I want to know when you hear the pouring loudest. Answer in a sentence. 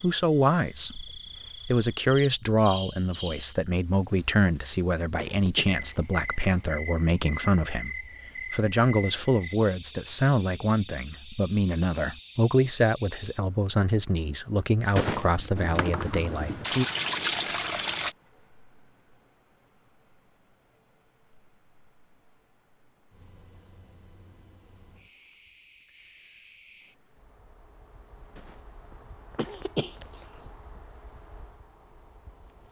The volume of the pouring peaks at 17 seconds.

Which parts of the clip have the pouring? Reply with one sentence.
You can hear the pouring from 15.6 to 18.1 s.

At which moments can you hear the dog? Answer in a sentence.
The dog can't be heard in this clip.